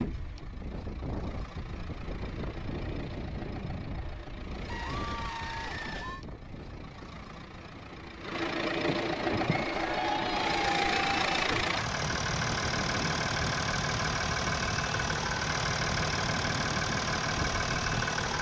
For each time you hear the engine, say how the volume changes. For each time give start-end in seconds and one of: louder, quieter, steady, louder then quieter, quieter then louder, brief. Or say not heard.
0.0-18.3 louder.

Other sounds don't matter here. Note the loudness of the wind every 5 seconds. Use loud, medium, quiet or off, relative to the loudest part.
loud, medium, loud, loud.